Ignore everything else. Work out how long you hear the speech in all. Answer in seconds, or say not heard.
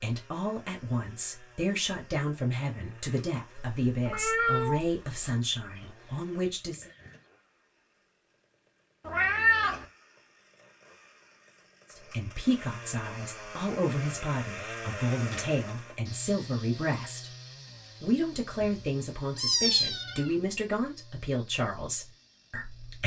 17 s.